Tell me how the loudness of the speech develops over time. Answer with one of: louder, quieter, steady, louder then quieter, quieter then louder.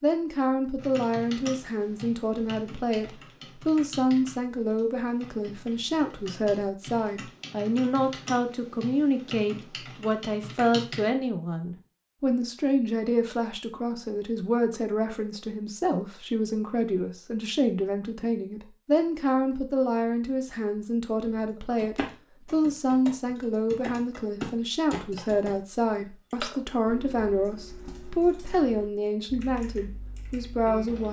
steady.